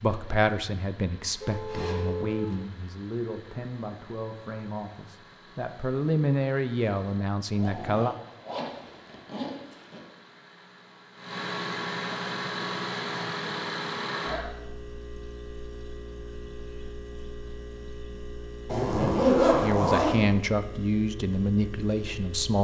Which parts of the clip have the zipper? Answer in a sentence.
You can hear the zipper from 1.2 to 2.4 s, from 7.5 to 10.0 s and from 18.6 to 20.2 s.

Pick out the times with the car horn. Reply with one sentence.
The car horn can be heard from 1.4 to 2.5 s.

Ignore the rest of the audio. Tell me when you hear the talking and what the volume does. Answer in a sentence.
The talking can be heard from 0.0 to 8.2 s, getting quieter then louder; and briefly from 19.6 to 22.5 s.